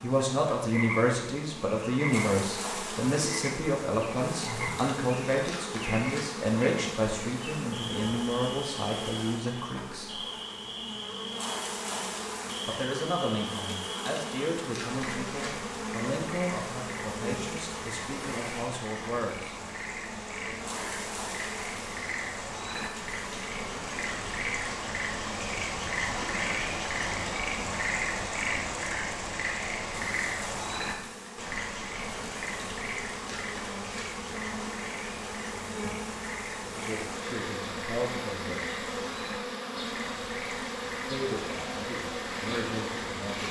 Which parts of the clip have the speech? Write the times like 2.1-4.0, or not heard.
0.0-10.2, 12.7-19.6, 36.8-38.8, 41.0-43.4.